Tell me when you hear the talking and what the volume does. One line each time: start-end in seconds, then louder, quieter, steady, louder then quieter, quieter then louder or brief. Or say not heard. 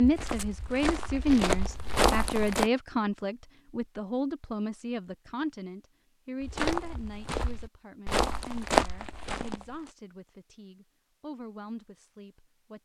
0.0-12.8 quieter.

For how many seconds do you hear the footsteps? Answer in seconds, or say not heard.
6 s.